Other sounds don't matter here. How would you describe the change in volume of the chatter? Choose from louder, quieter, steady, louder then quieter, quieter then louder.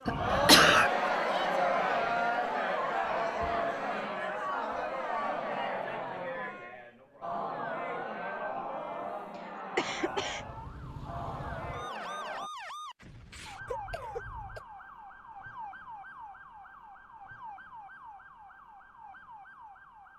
quieter.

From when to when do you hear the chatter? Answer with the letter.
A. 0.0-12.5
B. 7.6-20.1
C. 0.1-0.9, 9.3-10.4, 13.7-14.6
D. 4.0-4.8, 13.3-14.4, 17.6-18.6
A.